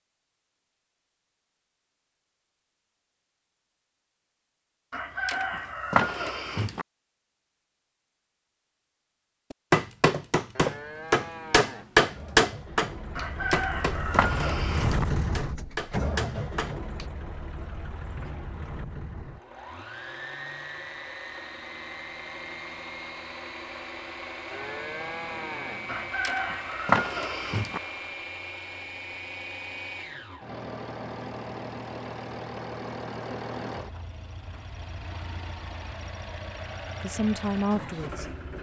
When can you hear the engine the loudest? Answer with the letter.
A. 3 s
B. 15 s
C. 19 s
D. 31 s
B.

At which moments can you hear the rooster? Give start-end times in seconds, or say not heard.
4.9-6.8, 13.2-15.1, 25.9-27.8.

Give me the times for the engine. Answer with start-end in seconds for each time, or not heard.
12.1-38.5.